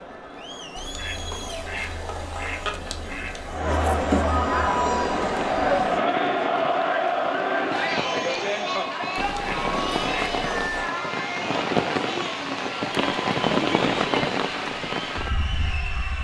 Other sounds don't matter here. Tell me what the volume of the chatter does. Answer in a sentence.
The loudness of the chatter goes up, then down.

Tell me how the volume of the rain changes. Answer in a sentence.
The loudness of the rain goes up.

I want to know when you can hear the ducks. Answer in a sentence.
You can hear the ducks from 0.8 to 3.6 s and from 9.2 to 10.9 s.